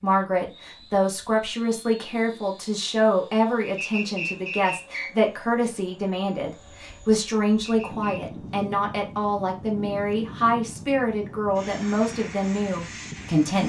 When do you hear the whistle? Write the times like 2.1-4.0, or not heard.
3.8-5.1, 7.6-8.2.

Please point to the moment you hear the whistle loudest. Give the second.
4 s.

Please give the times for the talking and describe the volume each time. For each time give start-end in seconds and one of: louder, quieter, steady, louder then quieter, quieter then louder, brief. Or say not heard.
0.0-13.6 steady.